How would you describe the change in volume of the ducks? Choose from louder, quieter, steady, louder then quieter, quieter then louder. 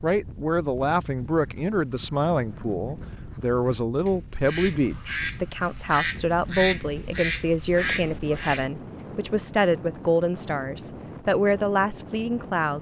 louder.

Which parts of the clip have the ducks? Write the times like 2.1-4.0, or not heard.
1.1-8.7.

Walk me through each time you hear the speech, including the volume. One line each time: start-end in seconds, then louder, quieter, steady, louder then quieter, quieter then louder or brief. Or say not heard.
0.0-12.7 steady.